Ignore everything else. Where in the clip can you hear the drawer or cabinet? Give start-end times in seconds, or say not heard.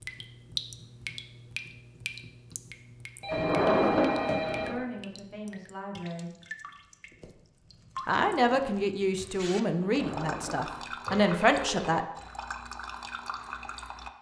3.3-4.8, 9.8-10.9.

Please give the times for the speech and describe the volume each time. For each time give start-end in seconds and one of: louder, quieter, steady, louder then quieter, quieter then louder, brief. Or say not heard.
4.5-6.3 brief
8.1-12.1 quieter then louder.